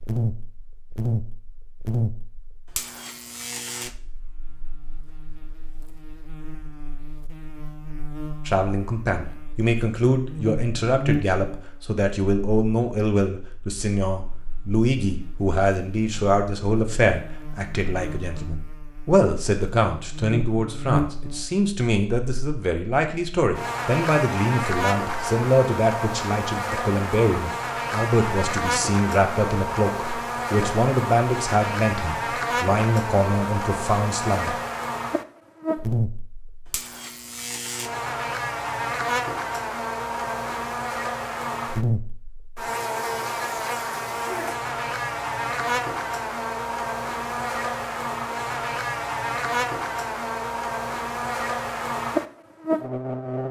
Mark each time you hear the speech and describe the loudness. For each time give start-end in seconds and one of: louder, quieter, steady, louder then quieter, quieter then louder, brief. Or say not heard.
8.4-34.5 steady.